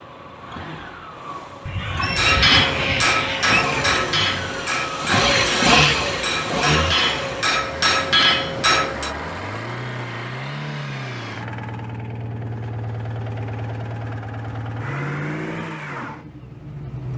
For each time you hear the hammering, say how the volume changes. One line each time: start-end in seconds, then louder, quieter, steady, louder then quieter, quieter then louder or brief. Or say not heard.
2.1-9.1 quieter then louder.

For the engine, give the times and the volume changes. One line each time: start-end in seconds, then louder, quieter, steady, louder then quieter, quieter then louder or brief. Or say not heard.
0.0-17.1 louder then quieter.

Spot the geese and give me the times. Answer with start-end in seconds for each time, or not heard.
1.6-3.6.